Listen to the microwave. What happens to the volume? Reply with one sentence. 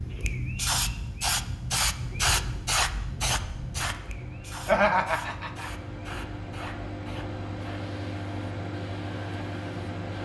The volume of the microwave goes up.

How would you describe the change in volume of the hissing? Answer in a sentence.
The volume of the hissing goes down.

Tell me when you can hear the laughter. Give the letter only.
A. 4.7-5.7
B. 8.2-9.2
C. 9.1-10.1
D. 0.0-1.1
A.